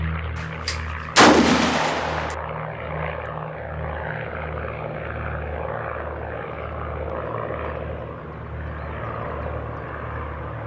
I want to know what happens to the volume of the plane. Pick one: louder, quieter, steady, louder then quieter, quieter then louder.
steady.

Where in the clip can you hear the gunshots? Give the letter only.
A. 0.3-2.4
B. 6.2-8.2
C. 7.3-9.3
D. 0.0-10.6
A.